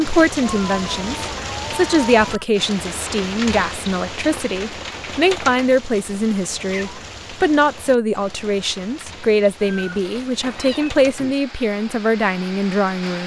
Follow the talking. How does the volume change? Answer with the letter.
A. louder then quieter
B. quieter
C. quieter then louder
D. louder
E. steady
E.